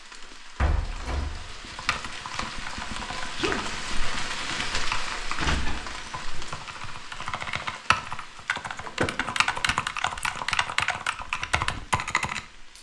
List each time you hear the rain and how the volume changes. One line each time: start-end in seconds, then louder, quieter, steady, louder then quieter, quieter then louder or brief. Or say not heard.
0.0-12.7 louder then quieter.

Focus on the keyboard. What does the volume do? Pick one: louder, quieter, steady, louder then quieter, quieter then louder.
louder.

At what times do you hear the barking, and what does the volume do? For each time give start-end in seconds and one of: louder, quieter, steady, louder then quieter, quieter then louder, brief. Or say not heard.
not heard.